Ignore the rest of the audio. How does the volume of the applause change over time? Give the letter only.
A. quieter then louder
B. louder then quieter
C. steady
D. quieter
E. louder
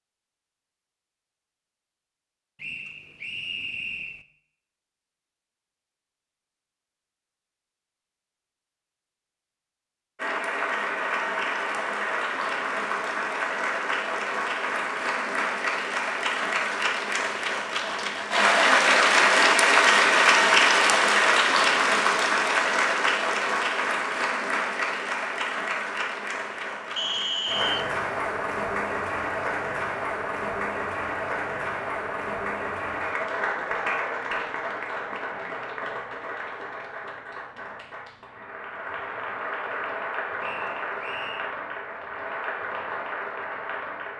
B.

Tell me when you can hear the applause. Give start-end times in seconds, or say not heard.
10.2-44.1.